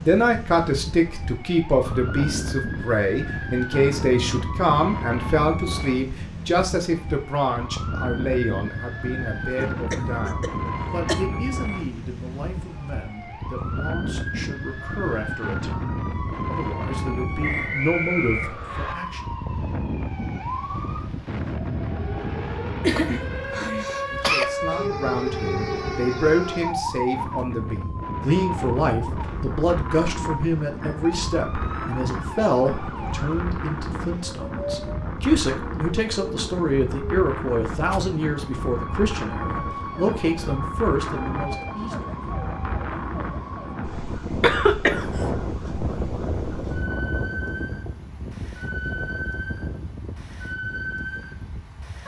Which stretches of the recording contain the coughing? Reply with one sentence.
You can hear the coughing from 9.5 to 11.2 s, from 22.8 to 24.4 s and from 44.4 to 45.3 s.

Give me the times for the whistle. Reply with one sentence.
The whistle can be heard from 17.4 to 18.9 s.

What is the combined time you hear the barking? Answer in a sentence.
The barking can't be heard in this clip.